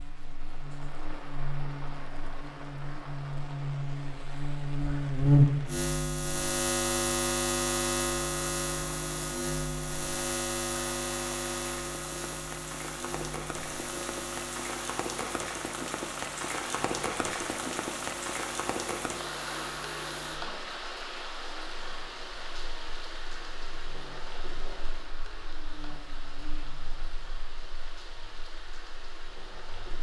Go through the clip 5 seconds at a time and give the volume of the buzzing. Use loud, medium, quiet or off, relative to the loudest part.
medium, loud, medium, quiet, quiet, quiet.